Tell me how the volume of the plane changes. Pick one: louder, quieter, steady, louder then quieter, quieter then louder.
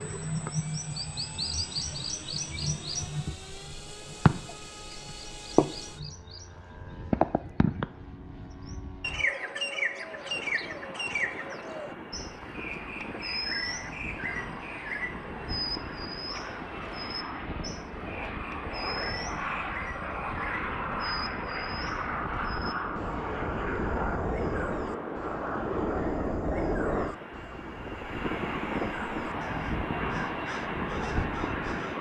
louder.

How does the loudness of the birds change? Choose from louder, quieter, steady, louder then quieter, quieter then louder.
quieter.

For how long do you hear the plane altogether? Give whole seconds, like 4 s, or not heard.
32 s.